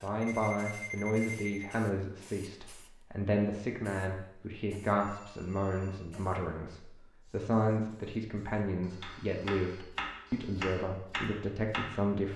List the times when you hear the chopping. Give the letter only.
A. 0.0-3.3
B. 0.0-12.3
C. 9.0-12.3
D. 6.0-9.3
C.